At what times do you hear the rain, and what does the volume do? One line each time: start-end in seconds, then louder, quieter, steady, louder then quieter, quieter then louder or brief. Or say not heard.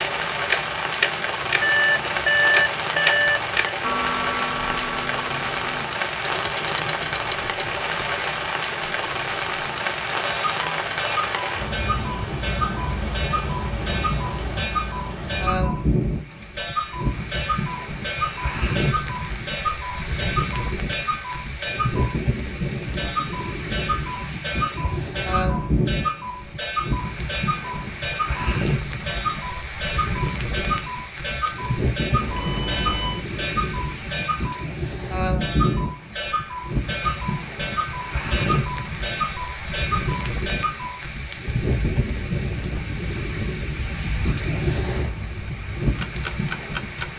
0.0-47.1 steady.